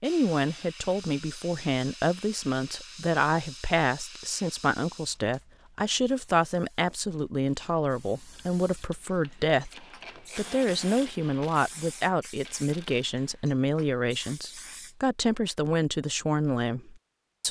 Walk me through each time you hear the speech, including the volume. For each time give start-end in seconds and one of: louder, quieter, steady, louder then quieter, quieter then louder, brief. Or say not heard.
0.0-17.4 steady.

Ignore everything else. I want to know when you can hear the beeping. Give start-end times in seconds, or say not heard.
not heard.